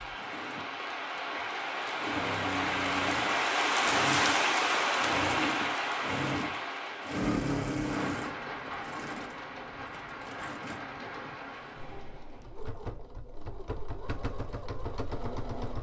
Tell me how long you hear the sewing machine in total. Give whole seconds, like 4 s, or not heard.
16 s.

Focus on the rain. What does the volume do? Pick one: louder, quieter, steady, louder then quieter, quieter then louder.
louder then quieter.